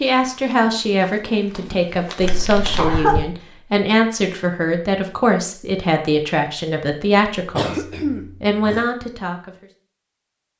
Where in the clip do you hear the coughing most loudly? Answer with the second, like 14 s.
3 s.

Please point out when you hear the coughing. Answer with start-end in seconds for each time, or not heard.
2.2-3.4, 7.5-8.8.